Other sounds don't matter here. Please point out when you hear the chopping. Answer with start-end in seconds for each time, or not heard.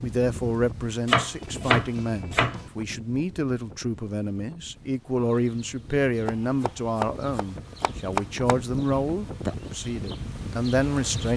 1.1-2.7, 6.2-8.6.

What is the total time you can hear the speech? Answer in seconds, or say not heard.
11 s.